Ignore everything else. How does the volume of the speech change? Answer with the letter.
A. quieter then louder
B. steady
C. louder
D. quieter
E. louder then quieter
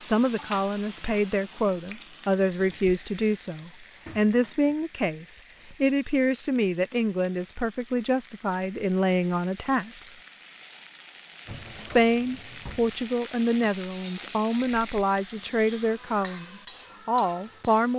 B.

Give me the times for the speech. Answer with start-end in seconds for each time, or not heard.
0.0-10.2, 11.8-17.9.